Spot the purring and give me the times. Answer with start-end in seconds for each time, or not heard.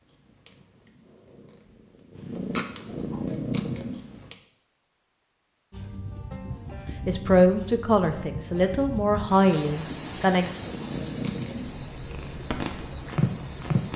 0.0-4.3, 10.4-13.9.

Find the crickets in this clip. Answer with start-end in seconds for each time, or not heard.
5.7-13.9.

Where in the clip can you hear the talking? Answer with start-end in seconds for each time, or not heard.
7.0-10.5.